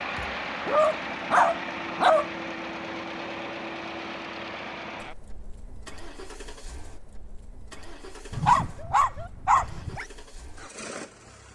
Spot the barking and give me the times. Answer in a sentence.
The barking can be heard from 0.1 to 2.2 s and from 8.3 to 10.1 s.